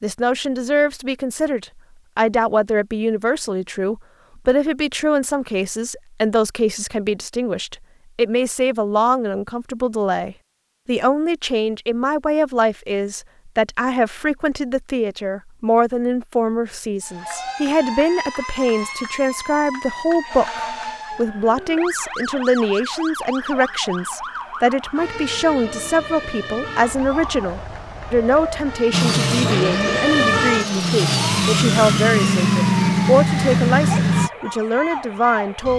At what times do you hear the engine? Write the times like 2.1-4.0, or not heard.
28.9-34.3.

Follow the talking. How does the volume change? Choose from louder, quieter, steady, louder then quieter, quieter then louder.
steady.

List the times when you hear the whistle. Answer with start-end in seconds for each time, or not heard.
not heard.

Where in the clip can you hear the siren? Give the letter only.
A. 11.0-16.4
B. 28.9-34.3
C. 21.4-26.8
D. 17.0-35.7
D.